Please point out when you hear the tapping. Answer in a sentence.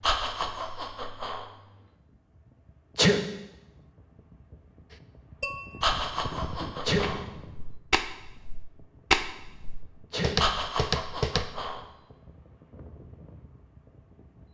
The tapping can be heard from 5.4 to 11.5 s.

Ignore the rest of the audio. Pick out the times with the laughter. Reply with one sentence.
You can hear the laughter from 0.0 to 1.4 s, from 5.8 to 7.2 s and from 10.3 to 11.8 s.